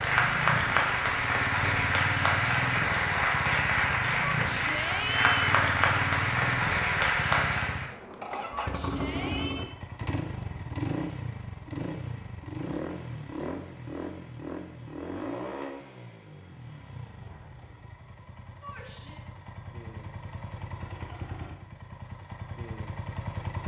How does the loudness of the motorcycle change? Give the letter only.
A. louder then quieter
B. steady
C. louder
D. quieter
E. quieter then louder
D.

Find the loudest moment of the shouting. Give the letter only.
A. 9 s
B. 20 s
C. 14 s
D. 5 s
D.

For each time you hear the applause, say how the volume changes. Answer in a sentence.
The applause can be heard from 0.0 to 7.9 s, at a steady volume.